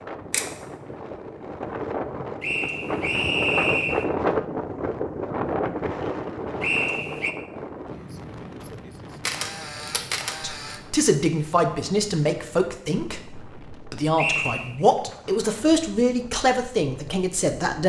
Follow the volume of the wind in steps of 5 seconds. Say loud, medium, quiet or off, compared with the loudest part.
loud, loud, quiet, quiet.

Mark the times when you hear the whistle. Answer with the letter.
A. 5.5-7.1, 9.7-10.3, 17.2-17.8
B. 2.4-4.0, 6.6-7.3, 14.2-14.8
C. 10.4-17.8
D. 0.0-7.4
B.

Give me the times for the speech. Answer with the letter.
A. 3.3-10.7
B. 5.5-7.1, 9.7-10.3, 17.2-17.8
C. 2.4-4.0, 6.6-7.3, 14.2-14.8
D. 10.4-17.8
D.